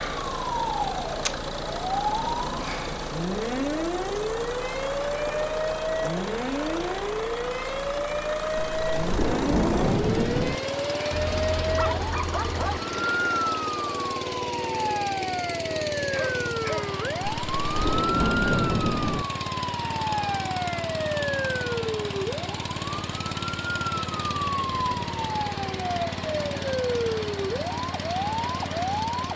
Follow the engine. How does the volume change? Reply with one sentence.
The volume of the engine stays about the same.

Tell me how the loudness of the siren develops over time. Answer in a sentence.
The volume of the siren stays about the same.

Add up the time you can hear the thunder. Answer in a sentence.
The thunder can be heard for 4 seconds in total.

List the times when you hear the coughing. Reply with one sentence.
You can't hear the coughing here.